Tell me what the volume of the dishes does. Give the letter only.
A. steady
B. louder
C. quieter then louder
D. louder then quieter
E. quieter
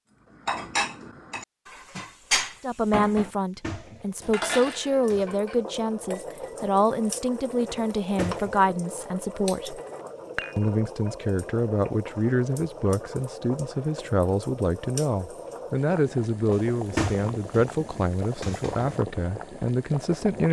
E.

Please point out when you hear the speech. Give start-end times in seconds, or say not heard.
2.6-9.8, 10.6-20.4.